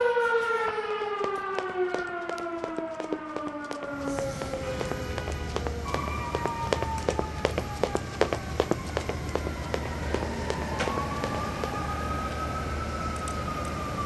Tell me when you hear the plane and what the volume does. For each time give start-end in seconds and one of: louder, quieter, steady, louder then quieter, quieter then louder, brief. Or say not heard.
3.7-14.0 steady.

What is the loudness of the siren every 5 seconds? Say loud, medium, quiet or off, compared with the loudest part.
loud, medium, loud.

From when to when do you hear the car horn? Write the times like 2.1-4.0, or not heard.
4.6-5.7.